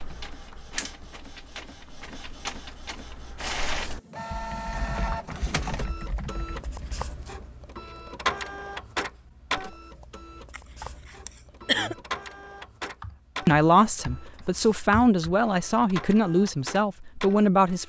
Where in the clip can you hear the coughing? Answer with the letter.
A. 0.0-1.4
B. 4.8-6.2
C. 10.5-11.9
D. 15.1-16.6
C.